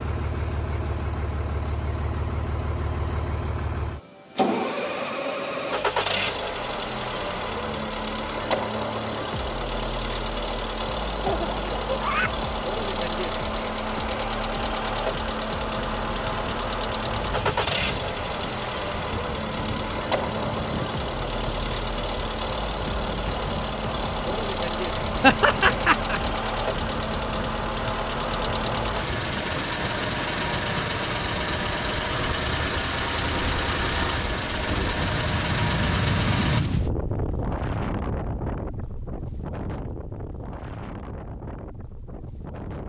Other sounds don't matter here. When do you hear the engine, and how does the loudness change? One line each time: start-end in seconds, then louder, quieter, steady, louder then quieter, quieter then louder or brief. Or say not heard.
0.0-36.6 steady.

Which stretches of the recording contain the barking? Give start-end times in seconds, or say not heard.
not heard.